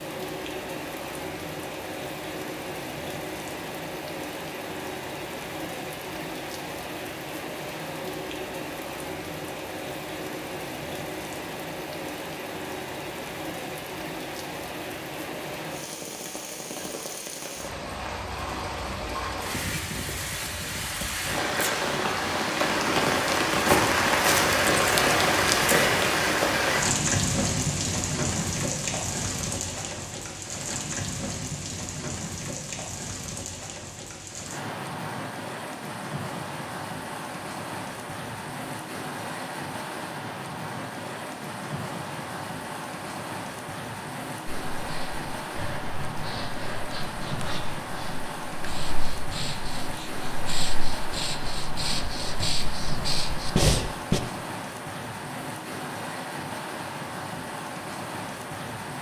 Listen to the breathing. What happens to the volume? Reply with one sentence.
The volume of the breathing goes up.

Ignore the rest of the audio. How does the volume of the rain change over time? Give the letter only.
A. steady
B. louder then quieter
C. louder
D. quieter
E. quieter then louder
B.